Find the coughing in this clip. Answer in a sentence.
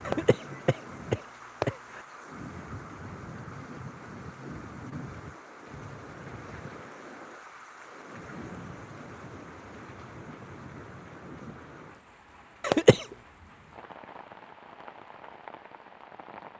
You can hear the coughing from 0.1 to 2.0 s and from 12.6 to 13.1 s.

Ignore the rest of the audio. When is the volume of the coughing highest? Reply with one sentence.
The loudest moment of the coughing is at 13 seconds.